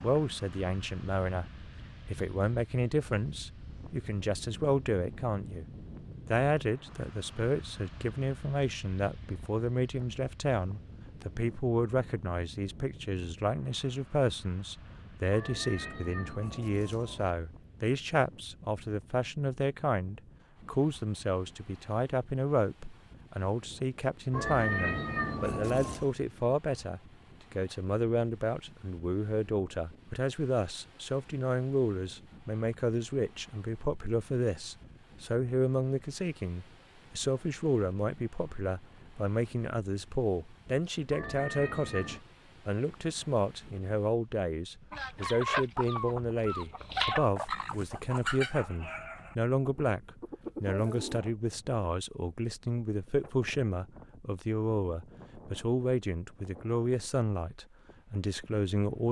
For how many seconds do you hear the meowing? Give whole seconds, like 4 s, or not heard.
5 s.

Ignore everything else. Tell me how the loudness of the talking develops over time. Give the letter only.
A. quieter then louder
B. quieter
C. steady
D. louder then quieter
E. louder
C.